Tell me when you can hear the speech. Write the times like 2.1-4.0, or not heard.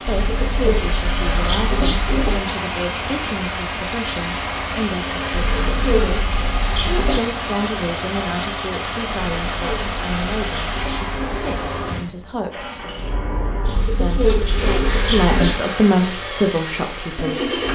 0.0-12.9, 13.8-17.4.